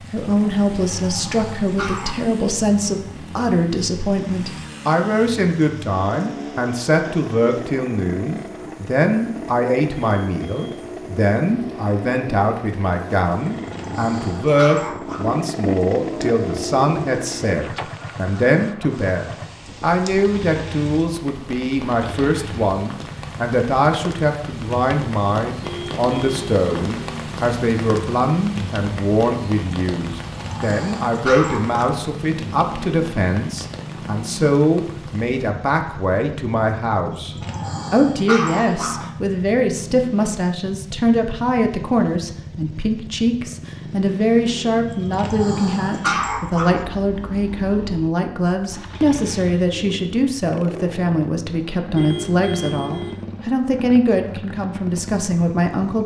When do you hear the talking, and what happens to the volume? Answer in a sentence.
The talking can be heard from 0.0 to 56.0 s, at a steady volume.